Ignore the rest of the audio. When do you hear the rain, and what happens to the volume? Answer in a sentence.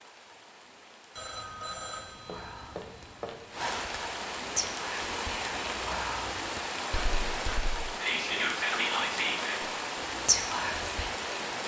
You can hear the rain from 0.0 to 11.6 s, getting louder.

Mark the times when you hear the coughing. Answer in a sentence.
The coughing can't be heard in this clip.